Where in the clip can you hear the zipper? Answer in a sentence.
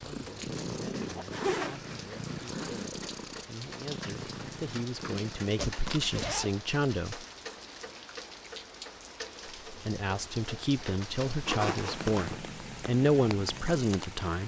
The zipper can be heard from 1.3 to 2.9 s, from 5.5 to 6.5 s and from 11.4 to 12.3 s.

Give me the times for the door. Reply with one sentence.
The door can't be heard in this clip.